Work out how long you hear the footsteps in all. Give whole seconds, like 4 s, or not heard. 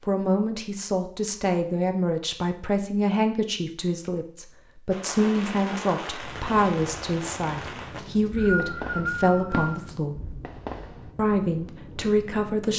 not heard.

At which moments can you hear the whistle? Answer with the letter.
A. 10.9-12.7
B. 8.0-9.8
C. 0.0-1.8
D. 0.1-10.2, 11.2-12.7
B.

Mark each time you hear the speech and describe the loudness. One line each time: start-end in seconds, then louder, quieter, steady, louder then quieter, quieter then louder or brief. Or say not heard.
0.1-10.2 steady
11.2-12.7 brief.